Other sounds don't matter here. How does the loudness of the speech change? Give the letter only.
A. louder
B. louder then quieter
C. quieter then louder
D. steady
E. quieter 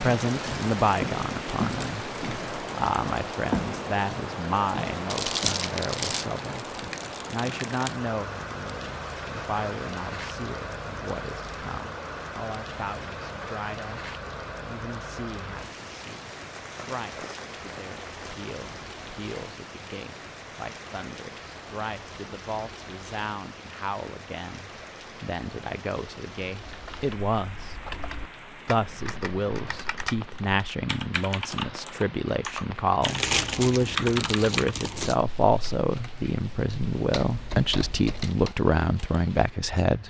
C.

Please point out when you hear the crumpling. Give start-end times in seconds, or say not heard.
5.1-6.2, 16.6-18.5, 33.0-35.1.